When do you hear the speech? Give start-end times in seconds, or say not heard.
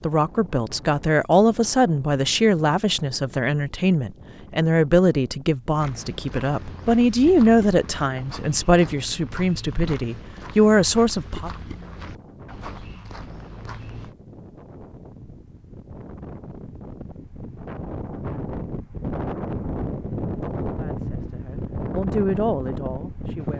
0.0-11.5, 20.8-23.5.